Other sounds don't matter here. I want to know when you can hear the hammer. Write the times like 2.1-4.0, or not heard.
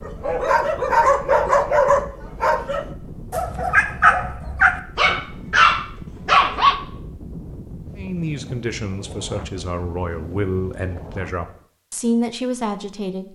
not heard.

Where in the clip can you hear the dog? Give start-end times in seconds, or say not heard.
0.1-6.8.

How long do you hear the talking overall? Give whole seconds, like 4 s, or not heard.
5 s.